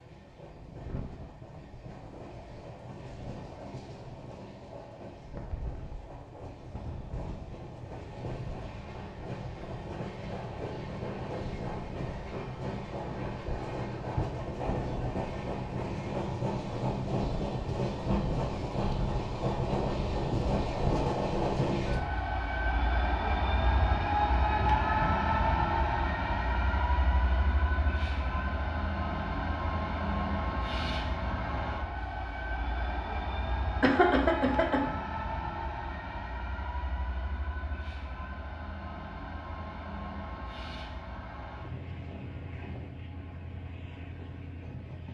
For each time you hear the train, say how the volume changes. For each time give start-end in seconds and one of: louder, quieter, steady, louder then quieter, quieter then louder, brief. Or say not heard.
0.0-45.0 louder then quieter.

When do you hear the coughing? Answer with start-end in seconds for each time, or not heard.
33.8-34.8.